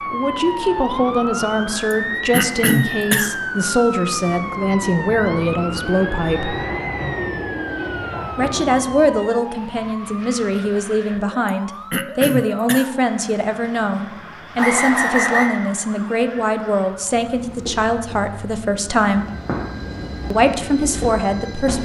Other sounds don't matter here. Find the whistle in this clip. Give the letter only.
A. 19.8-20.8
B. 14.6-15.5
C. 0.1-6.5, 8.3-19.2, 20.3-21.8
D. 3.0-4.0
B.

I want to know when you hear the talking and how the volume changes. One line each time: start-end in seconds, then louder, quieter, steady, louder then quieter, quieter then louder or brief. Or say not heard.
0.1-6.5 steady
8.3-19.2 steady
20.3-21.8 brief.